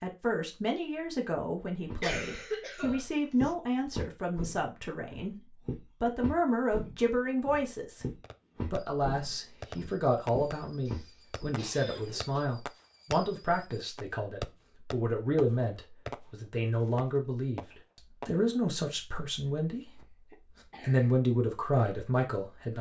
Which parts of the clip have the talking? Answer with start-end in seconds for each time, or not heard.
0.0-5.3, 6.0-8.1, 8.7-20.0, 20.8-22.7.